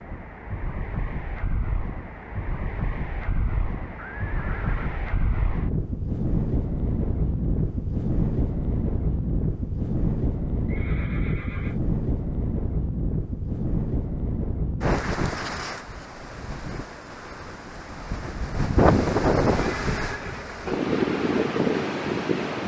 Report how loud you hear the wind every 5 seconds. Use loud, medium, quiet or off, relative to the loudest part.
medium, loud, loud, loud, loud.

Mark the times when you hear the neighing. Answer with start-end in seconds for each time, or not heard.
4.2-5.0, 10.7-11.8, 19.6-20.6.